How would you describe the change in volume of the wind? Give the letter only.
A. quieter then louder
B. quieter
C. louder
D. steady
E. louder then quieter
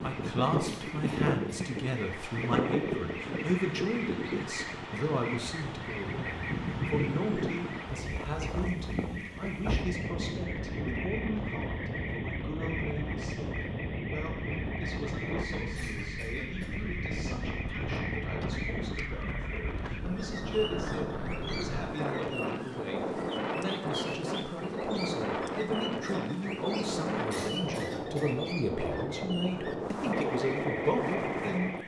D.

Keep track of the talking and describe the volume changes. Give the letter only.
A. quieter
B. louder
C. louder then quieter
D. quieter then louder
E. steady
D.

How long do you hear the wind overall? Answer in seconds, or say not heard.
32 s.